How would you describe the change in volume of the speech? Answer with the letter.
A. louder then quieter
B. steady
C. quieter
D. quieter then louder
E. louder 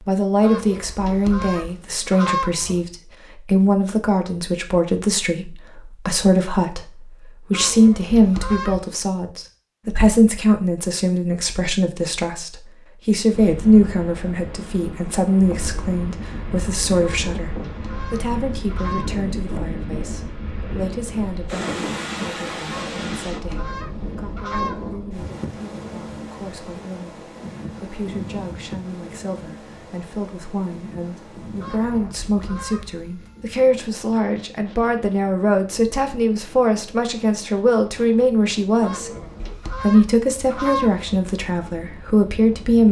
D.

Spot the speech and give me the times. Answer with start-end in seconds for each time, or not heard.
0.0-17.5, 18.1-39.1, 39.8-42.8.